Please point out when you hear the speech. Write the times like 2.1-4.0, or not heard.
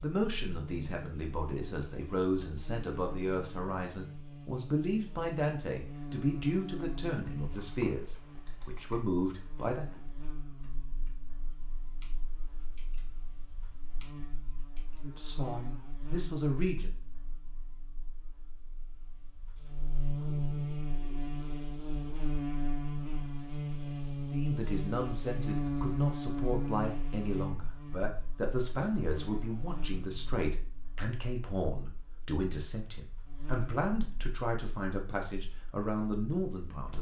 0.0-9.9, 15.0-16.9, 24.3-36.9.